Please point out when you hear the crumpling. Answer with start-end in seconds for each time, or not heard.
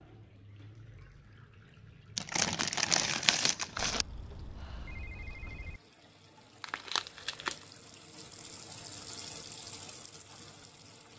2.1-4.0, 6.6-7.7.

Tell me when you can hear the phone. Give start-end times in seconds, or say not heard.
3.8-5.8.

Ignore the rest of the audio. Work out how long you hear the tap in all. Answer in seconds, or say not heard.
11 s.